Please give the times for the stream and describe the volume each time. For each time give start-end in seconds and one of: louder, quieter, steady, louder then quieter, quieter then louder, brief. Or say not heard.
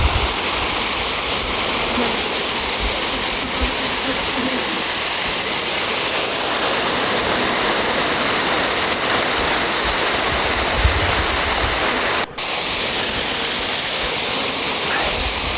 0.0-15.5 steady.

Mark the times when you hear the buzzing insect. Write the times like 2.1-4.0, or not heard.
0.0-15.5.